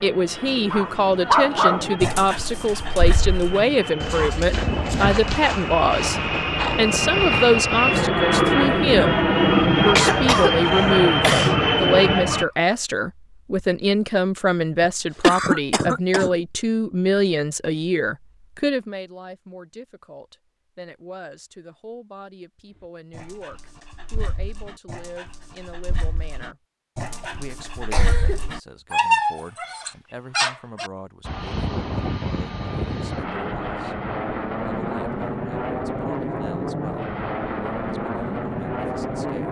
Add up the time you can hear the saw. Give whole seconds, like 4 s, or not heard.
not heard.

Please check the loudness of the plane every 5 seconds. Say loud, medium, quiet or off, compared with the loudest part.
quiet, loud, loud, off, off, off, medium, medium.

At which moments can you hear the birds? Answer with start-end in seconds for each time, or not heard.
not heard.